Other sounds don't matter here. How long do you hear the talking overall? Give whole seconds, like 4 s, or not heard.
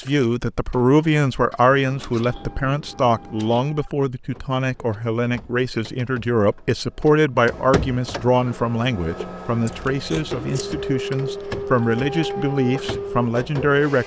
14 s.